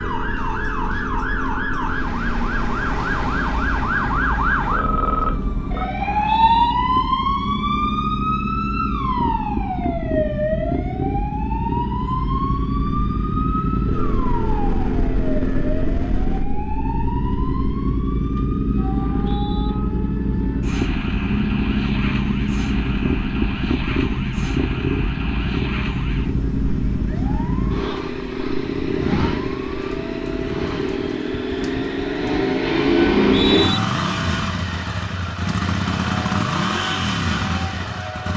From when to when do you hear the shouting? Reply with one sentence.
The shouting can't be heard in this clip.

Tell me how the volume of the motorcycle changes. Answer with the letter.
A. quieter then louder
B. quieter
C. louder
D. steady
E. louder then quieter
C.